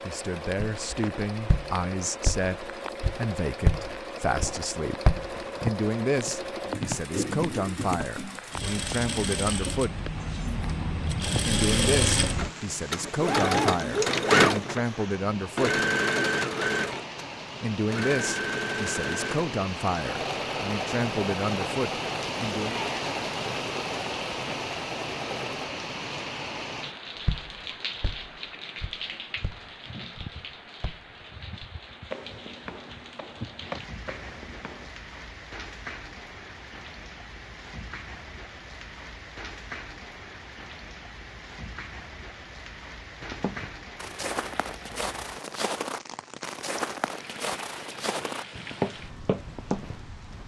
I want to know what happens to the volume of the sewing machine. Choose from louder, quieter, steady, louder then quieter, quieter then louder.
louder then quieter.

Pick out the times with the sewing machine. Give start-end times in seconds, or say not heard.
0.0-25.8.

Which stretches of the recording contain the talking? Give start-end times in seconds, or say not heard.
0.1-5.0, 5.6-10.0, 11.4-15.8, 17.6-22.9.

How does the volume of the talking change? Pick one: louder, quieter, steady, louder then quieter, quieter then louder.
steady.